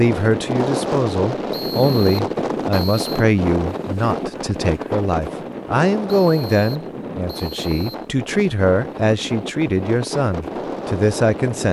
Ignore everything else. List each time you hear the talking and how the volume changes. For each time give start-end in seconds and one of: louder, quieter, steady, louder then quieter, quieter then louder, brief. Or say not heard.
0.0-11.6 steady.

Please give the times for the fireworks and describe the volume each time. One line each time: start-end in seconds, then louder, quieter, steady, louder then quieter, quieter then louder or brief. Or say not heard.
not heard.